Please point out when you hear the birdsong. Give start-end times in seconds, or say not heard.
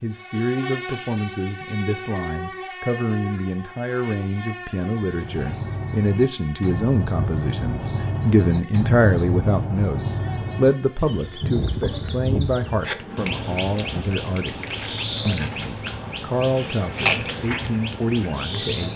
4.9-18.9.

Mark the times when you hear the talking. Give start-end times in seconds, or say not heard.
0.0-18.9.